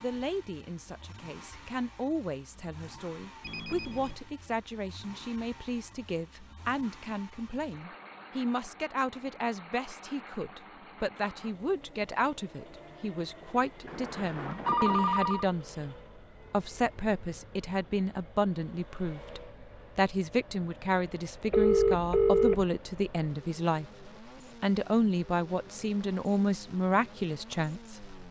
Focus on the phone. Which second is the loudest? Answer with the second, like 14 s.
22 s.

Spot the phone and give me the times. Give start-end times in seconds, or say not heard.
3.4-4.2, 13.8-15.5, 21.5-22.6.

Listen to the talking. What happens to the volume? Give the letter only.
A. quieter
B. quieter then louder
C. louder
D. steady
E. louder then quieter
C.